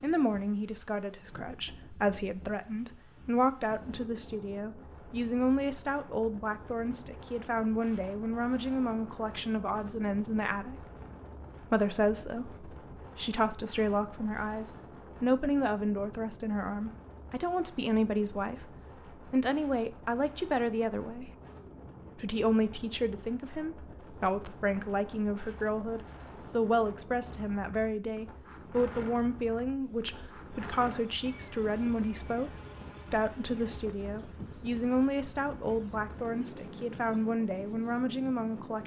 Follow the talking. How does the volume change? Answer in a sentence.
The loudness of the talking stays about the same.